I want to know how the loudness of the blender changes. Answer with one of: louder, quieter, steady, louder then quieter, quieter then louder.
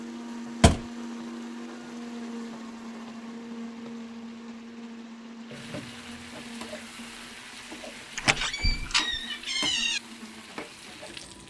quieter.